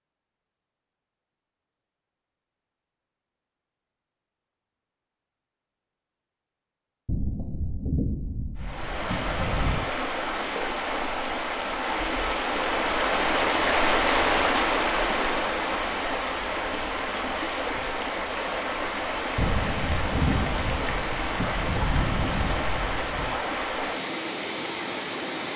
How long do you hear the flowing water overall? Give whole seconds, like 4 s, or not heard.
17 s.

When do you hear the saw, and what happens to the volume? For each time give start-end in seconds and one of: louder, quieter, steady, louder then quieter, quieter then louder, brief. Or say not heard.
not heard.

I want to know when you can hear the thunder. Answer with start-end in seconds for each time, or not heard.
7.0-9.8, 19.4-23.4.